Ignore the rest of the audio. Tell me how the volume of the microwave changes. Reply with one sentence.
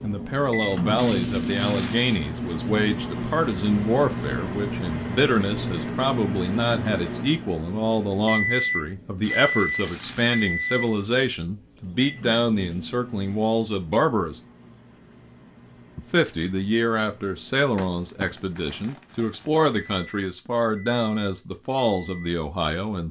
The loudness of the microwave goes down.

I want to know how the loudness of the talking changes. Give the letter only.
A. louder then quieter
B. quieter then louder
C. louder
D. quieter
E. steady
E.